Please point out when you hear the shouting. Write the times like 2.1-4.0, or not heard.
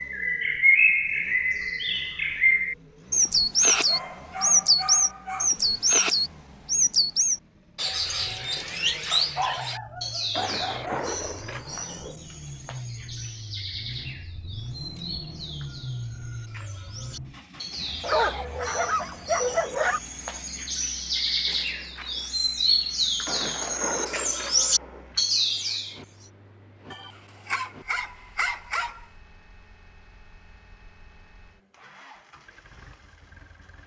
not heard.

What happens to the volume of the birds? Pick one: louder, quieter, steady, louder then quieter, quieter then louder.
quieter then louder.